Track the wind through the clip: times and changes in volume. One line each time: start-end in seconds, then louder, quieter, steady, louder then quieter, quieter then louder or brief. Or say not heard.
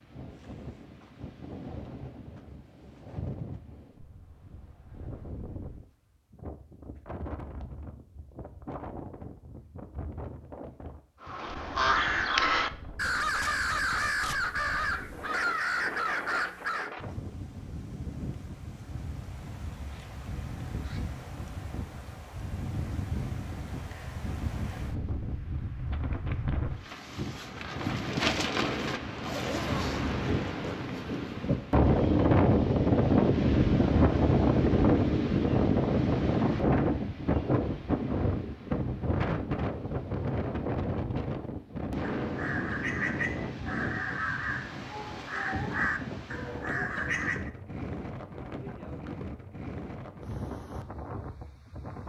0.0-52.0 louder then quieter.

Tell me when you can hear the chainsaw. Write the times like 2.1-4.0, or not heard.
not heard.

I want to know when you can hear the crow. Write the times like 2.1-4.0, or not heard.
11.2-16.9, 42.1-47.5.